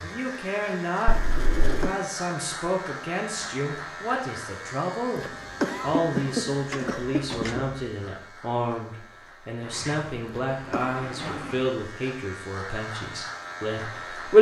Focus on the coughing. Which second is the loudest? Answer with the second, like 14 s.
6 s.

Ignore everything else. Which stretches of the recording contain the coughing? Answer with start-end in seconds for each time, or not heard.
1.6-2.0, 5.2-7.7, 10.2-11.1.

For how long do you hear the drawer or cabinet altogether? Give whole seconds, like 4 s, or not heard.
4 s.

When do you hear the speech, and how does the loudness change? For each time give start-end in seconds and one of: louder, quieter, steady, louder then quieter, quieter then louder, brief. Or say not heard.
0.0-14.3 steady.